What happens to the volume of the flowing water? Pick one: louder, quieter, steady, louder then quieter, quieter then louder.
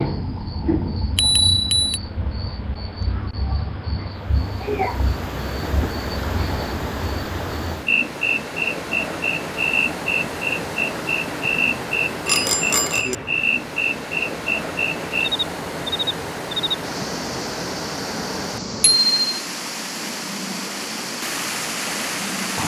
steady.